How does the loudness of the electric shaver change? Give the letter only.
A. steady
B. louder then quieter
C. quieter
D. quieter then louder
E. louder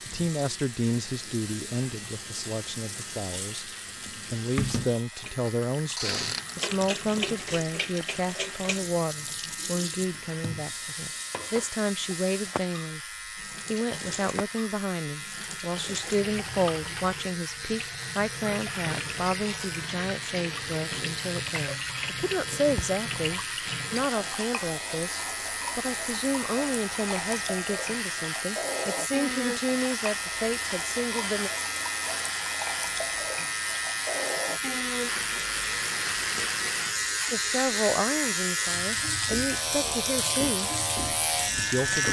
E.